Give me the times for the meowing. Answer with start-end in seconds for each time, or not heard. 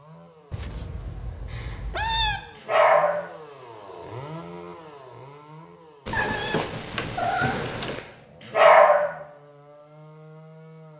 0.5-2.4, 6.0-8.0.